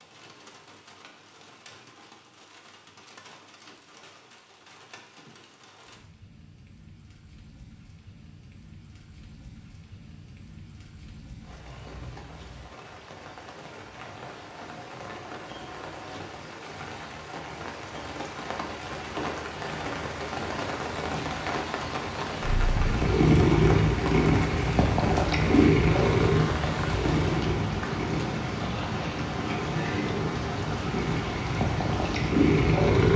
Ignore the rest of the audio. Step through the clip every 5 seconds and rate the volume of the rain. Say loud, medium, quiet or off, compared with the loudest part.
quiet, quiet, quiet, medium, loud, loud, loud.